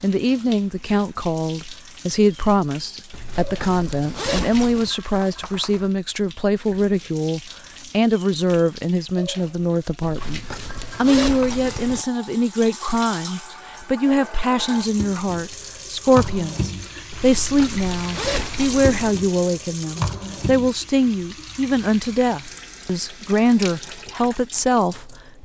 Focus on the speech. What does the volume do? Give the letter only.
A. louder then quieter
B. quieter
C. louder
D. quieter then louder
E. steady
E.